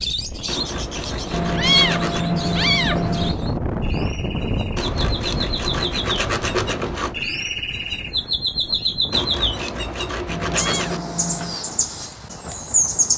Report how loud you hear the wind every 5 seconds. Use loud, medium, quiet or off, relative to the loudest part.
loud, medium, medium.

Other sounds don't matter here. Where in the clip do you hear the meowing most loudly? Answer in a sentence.
The loudest moment of the meowing is at 2 seconds.